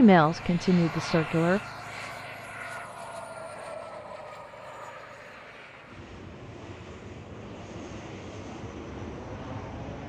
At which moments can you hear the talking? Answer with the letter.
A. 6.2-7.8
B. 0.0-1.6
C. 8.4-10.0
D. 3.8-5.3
B.